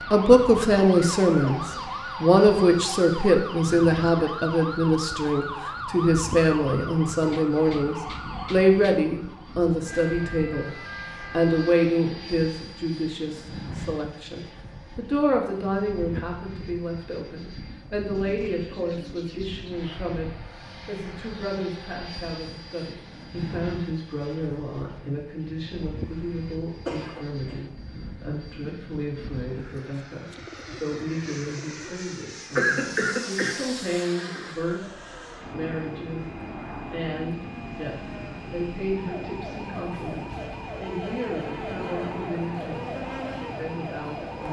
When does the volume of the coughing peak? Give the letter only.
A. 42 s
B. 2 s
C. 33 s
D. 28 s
C.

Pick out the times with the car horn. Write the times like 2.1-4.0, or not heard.
not heard.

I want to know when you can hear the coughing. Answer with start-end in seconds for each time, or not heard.
0.7-1.6, 26.9-27.6, 32.5-34.5.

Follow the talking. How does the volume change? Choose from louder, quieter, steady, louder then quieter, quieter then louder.
quieter.